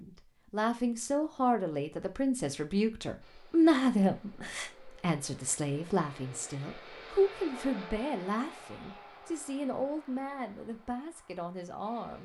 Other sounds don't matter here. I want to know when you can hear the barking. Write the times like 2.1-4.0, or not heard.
not heard.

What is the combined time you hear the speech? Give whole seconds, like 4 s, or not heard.
12 s.